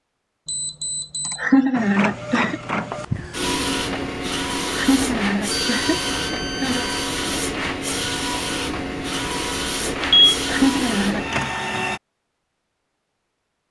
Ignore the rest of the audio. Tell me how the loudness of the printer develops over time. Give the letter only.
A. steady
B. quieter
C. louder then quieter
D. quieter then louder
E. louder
A.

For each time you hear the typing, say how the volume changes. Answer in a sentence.
You can't hear the typing here.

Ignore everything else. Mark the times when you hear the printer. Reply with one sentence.
The printer can be heard from 1.7 to 12.0 s.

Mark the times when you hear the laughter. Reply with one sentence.
You can hear the laughter from 1.2 to 2.6 s, from 4.6 to 6.8 s and from 10.4 to 11.4 s.